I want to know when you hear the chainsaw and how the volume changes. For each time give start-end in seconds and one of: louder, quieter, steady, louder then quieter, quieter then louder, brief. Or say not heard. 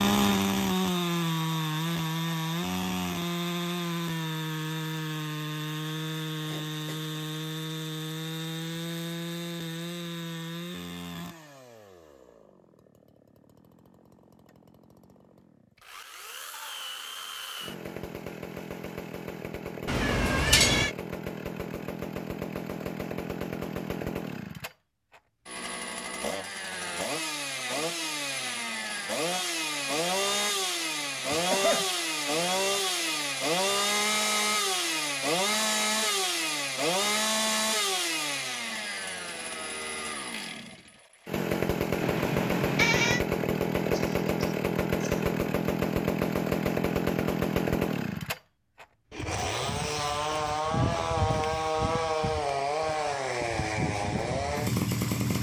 0.0-55.3 quieter then louder.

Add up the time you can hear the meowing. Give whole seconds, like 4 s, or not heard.
2 s.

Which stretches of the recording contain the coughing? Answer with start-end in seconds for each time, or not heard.
6.5-7.2, 31.3-31.9, 43.9-45.2.